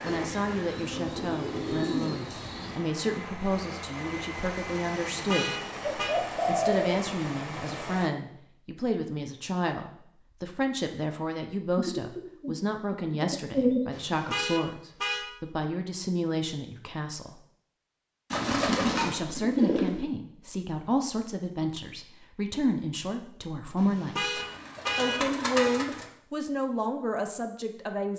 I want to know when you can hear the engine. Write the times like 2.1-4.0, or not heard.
0.0-8.1.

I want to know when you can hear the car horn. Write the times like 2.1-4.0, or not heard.
5.0-6.2, 13.9-15.2, 23.8-25.8.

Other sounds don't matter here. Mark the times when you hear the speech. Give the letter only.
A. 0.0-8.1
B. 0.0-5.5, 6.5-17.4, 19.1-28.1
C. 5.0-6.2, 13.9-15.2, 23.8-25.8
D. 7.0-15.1
B.